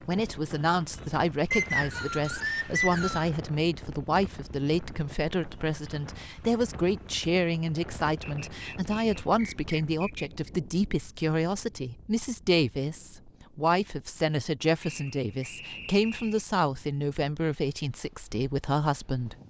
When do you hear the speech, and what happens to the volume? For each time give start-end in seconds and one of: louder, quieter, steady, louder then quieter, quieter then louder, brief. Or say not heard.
0.1-19.4 steady.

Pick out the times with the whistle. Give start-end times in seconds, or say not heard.
1.5-3.3, 8.2-10.3, 14.8-16.4.